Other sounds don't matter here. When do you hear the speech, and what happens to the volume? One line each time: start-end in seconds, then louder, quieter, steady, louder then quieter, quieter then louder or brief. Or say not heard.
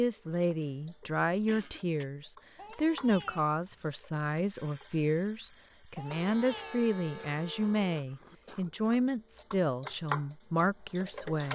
0.0-11.4 steady.